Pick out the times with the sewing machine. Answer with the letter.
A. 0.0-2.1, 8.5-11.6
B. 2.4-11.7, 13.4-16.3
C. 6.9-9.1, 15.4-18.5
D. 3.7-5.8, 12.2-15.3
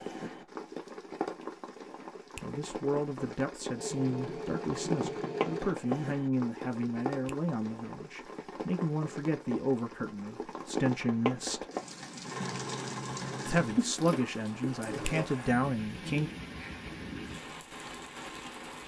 D.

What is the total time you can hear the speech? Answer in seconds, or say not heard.
12 s.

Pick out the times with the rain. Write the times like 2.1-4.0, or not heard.
0.0-18.8.